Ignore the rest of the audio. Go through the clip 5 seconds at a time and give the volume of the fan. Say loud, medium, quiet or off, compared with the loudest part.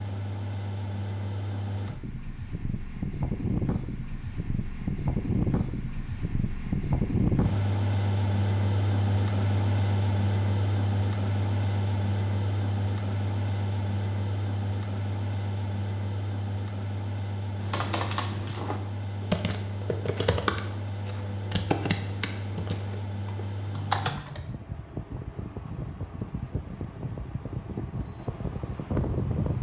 medium, loud, loud, medium, medium, medium.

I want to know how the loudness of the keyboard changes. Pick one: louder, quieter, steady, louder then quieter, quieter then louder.
louder.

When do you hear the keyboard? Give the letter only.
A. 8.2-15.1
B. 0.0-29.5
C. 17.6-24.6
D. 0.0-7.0
C.